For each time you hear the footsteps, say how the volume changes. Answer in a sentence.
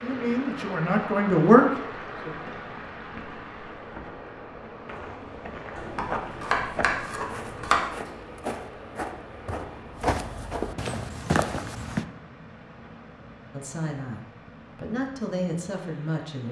The footsteps can be heard from 4.8 to 12.1 s, getting louder.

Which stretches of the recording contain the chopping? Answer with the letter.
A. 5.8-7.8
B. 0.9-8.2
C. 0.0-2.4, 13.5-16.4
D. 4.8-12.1
A.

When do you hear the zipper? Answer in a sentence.
You can't hear the zipper here.